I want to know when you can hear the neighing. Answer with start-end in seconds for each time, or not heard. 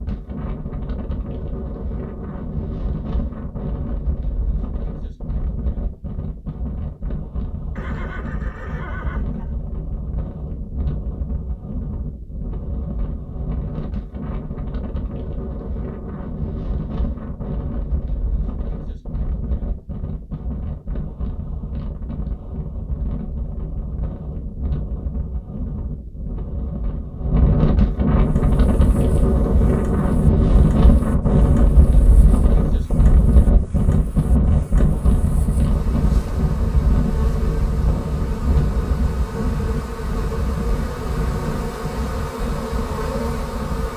7.8-9.6.